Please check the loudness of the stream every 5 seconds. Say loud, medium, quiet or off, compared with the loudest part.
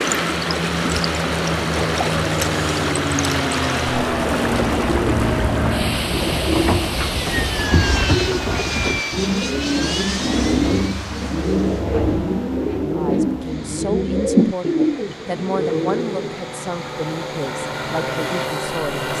loud, medium, quiet, quiet.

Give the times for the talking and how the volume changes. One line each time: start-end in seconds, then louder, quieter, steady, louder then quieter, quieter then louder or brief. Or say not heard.
12.9-19.1 steady.